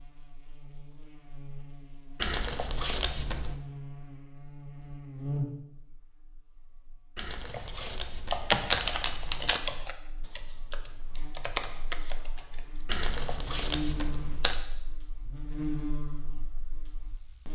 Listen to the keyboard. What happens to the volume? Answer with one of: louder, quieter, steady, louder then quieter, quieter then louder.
quieter then louder.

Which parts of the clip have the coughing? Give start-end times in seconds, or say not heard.
not heard.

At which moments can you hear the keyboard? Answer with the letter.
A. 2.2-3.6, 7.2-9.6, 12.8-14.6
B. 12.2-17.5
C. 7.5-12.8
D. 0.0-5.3
C.